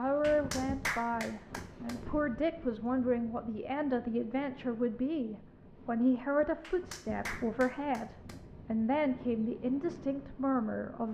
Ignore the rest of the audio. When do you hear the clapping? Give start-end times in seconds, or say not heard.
0.2-2.0, 6.6-8.4.